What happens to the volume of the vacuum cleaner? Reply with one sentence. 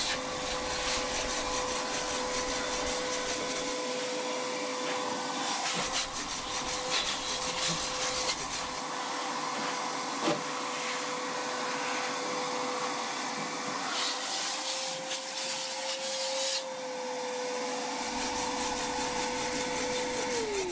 The loudness of the vacuum cleaner stays about the same.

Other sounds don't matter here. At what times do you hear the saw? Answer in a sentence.
The saw can be heard from 0.0 to 3.8 s, from 5.8 to 8.8 s and from 17.9 to 20.6 s.